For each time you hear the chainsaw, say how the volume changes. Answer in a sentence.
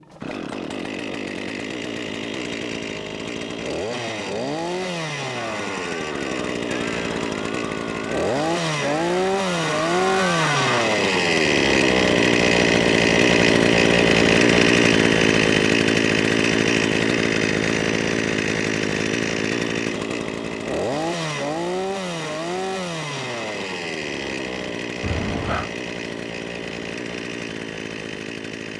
You can hear the chainsaw from 0.0 to 28.7 s, getting louder then quieter.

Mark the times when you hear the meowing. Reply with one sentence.
The meowing can be heard from 25.0 to 25.7 s.